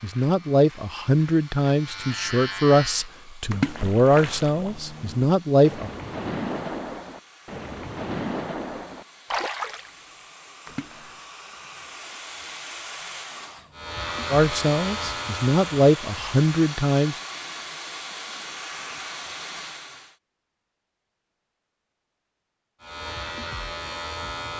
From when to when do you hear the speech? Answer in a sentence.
You can hear the speech from 0.0 to 5.9 s and from 14.3 to 17.1 s.